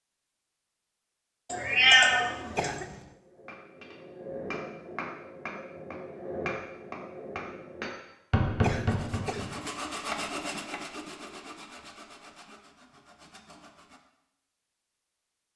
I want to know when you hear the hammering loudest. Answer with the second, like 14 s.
9 s.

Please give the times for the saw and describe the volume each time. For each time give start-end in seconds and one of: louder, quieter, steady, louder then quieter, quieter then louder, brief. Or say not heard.
8.8-14.0 quieter.